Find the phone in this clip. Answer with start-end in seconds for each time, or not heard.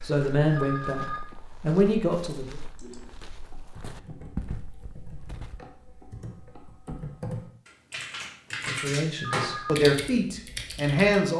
0.5-1.2, 9.2-9.8.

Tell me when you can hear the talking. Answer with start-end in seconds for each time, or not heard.
0.0-2.6, 8.7-11.3.